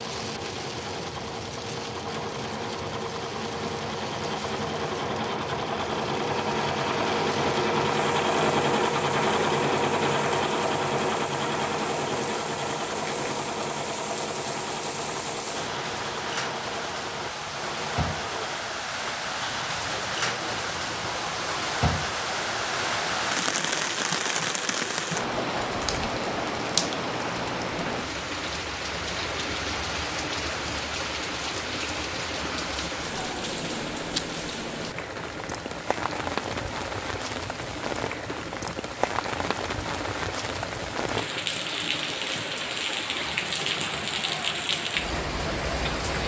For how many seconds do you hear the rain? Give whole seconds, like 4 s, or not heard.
46 s.